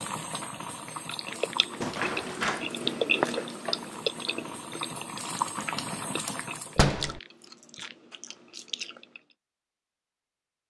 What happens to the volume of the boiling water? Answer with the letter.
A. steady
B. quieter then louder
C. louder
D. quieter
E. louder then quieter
B.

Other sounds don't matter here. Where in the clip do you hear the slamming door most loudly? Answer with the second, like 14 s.
7 s.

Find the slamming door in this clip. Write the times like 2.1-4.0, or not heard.
1.8-2.7, 6.8-7.2.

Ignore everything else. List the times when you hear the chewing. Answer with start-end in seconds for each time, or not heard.
1.1-9.2.